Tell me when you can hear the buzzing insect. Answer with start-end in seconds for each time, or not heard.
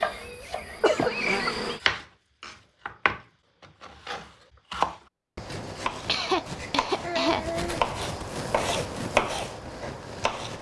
0.0-1.8.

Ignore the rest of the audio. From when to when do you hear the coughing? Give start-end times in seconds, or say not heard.
0.1-1.5, 6.0-7.8.